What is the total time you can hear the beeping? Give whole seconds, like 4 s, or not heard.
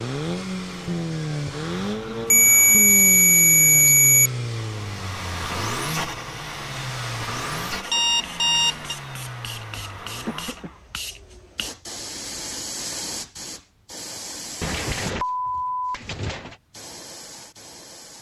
5 s.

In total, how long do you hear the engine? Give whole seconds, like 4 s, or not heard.
11 s.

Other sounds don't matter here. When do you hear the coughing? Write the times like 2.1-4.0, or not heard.
10.2-10.8.